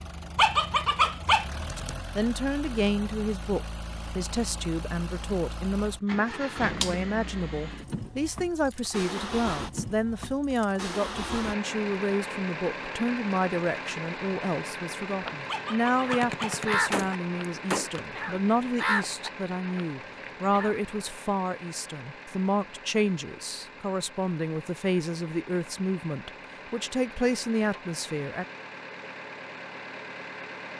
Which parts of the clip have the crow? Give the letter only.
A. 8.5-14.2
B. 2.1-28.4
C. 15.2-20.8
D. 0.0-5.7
C.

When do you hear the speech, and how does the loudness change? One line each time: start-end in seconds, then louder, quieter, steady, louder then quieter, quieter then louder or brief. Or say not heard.
2.1-28.4 steady.